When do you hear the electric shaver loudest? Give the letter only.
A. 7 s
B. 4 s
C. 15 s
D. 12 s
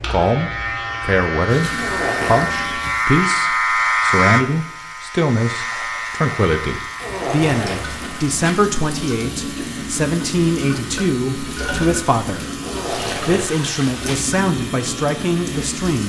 B.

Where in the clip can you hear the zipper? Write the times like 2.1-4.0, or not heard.
1.8-2.5, 7.0-8.5, 12.6-14.2.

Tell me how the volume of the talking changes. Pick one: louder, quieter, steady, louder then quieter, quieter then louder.
steady.